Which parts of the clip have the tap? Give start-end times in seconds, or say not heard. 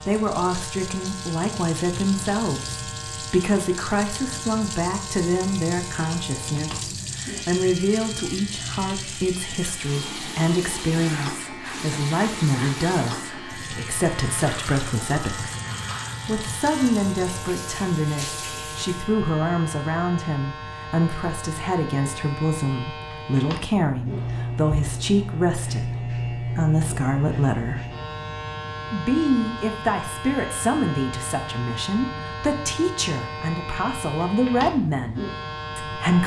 0.0-18.9.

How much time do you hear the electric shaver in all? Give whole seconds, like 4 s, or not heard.
36 s.